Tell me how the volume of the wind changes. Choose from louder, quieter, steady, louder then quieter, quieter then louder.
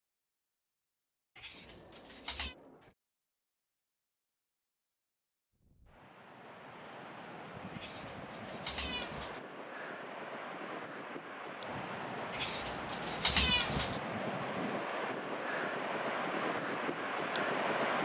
louder.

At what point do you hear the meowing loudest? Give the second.
13 s.